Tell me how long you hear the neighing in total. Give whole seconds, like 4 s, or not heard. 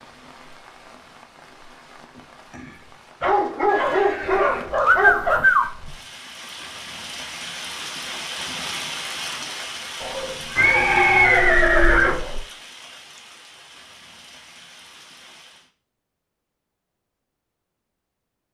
4 s.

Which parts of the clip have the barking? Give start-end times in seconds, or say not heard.
3.2-5.5, 10.0-12.4.